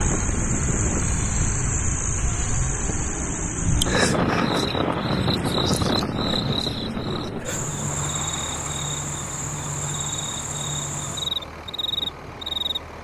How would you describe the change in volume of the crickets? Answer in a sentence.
The volume of the crickets stays about the same.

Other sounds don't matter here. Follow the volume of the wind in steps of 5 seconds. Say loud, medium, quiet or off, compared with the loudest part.
loud, loud, quiet.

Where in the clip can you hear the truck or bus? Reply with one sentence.
You can hear the truck or bus from 0.0 to 12.9 s.